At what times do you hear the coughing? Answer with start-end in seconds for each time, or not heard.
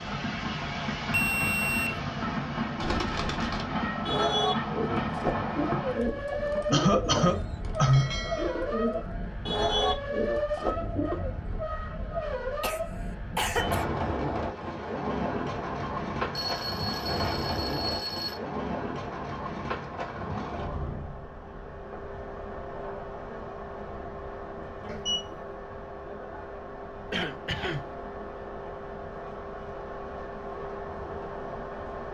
6.7-8.2, 12.6-13.8, 27.1-27.9.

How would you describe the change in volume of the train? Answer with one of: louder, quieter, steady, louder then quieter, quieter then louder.
quieter.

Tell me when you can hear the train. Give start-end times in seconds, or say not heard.
0.0-32.0.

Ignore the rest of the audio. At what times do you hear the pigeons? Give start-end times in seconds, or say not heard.
2.8-11.3.